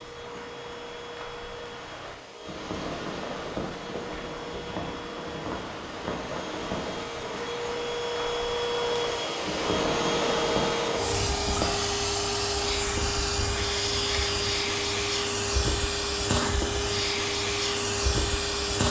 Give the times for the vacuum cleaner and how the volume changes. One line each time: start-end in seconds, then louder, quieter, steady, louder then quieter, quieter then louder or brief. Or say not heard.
0.0-18.8 louder.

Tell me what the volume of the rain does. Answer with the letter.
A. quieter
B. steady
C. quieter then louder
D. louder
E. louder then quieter
D.